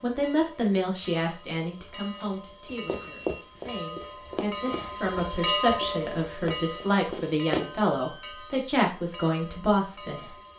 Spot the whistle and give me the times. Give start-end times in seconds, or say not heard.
not heard.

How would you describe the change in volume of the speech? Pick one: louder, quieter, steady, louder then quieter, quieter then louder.
quieter then louder.